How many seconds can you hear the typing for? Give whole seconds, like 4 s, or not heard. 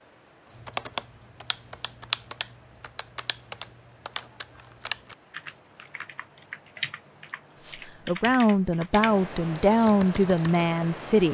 10 s.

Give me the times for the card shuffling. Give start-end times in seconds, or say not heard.
not heard.